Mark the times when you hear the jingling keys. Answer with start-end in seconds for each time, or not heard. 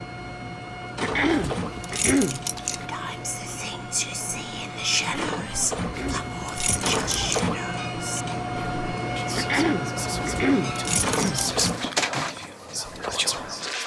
1.1-2.8, 5.8-7.4, 10.2-11.4.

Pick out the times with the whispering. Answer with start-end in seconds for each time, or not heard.
2.8-13.8.